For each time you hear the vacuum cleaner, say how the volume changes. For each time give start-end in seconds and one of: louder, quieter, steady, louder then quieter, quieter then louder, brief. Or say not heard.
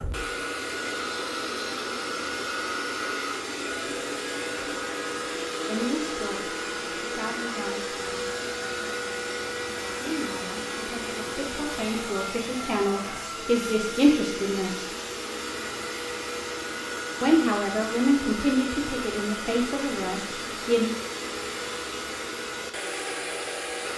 0.0-23.9 steady.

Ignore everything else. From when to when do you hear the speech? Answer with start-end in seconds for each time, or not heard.
5.7-8.3, 10.0-14.9, 17.2-20.9.